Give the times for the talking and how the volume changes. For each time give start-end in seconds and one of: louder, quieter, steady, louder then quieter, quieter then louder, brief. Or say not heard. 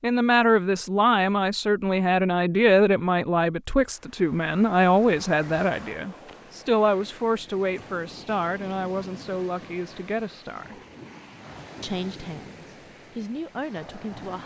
0.0-10.8 quieter
11.8-14.4 brief.